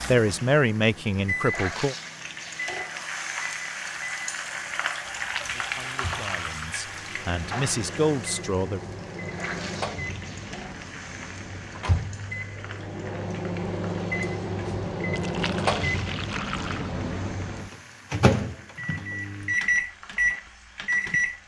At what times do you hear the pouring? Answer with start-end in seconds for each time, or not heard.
5.0-6.7, 15.1-16.9.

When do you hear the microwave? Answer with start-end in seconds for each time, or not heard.
0.0-21.4.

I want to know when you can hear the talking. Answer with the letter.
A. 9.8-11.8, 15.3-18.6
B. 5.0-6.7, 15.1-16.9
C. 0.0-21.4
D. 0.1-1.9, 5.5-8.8
D.